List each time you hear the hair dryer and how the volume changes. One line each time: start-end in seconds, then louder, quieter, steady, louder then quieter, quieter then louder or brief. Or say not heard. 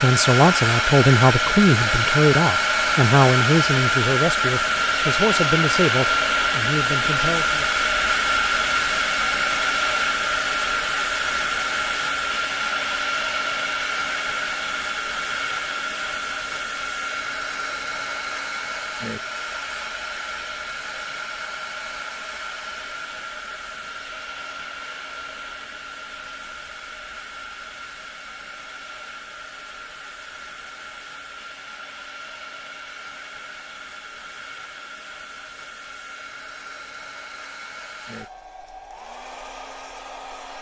0.0-40.5 quieter.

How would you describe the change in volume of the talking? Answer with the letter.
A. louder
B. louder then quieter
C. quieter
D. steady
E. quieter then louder
C.